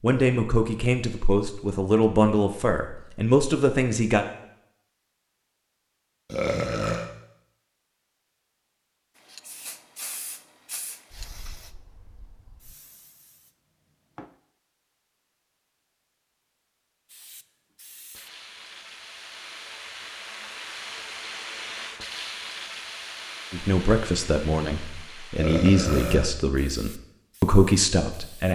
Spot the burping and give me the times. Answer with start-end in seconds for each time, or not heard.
6.2-7.1, 25.4-26.3.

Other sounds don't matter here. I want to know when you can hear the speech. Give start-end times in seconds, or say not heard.
0.0-4.2, 23.5-28.5.